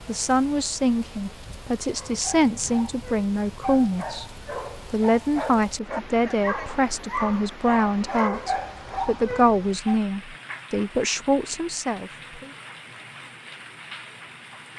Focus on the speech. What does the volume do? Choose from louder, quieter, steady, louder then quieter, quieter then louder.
steady.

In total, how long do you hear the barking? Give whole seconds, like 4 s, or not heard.
8 s.